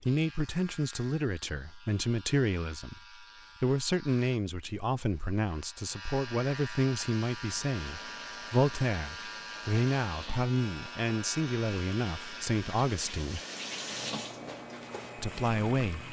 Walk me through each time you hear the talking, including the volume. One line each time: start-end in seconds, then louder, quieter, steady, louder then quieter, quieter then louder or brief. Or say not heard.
0.0-13.4 steady
15.2-16.0 brief.